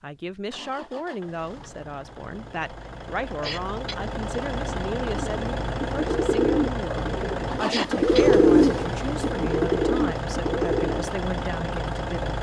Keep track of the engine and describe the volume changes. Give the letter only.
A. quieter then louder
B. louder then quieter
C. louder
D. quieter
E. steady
C.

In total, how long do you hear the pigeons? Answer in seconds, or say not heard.
6 s.